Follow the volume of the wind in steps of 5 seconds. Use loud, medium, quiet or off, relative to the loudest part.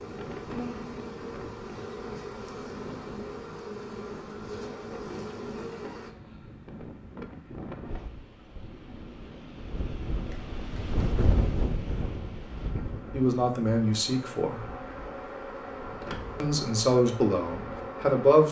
medium, medium, loud, quiet.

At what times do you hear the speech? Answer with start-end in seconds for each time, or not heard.
13.1-14.7, 16.4-18.4.